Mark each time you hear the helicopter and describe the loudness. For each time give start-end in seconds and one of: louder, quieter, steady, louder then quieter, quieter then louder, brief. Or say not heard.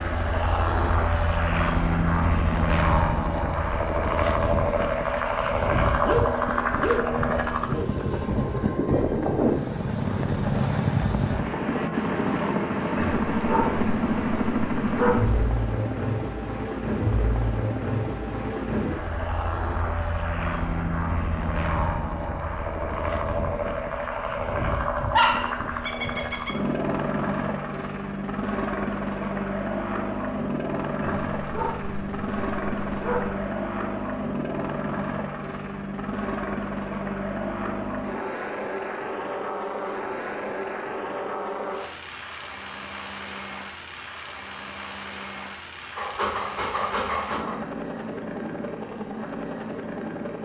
0.0-50.4 quieter.